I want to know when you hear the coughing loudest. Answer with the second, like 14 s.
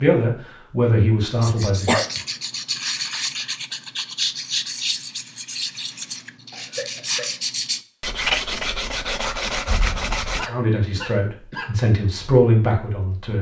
2 s.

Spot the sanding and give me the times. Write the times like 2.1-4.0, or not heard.
1.4-10.5.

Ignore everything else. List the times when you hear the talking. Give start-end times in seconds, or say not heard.
0.0-2.0, 10.4-13.3.